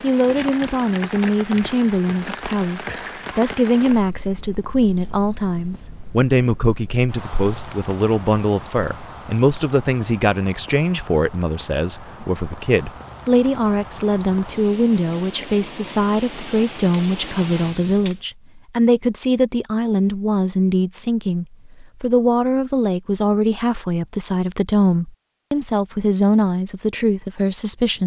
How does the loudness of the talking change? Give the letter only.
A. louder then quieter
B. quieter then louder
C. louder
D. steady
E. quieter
D.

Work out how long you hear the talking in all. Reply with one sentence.
You can hear the talking for 28 seconds altogether.